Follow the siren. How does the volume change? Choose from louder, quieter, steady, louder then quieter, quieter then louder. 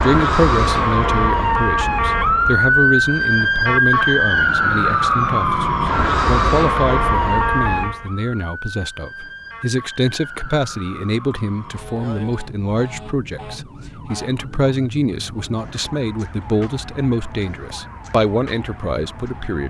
quieter.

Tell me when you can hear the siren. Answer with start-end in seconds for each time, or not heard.
0.0-19.6.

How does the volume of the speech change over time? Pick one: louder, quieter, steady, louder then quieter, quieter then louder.
steady.